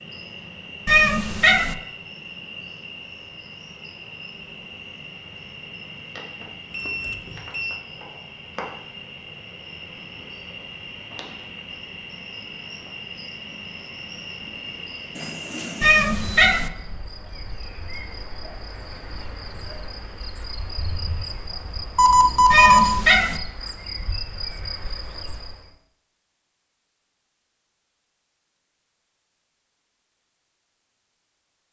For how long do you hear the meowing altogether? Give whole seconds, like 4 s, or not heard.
3 s.